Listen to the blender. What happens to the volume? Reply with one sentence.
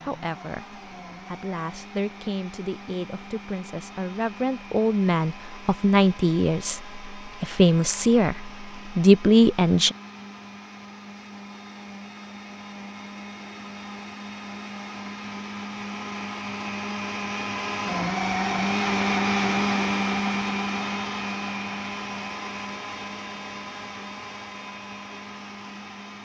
The loudness of the blender goes up, then down.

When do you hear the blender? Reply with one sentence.
The blender can be heard from 0.0 to 26.2 s.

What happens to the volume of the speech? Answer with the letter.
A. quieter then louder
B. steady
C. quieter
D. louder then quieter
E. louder
E.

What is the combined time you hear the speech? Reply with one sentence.
You can hear the speech for 10 seconds altogether.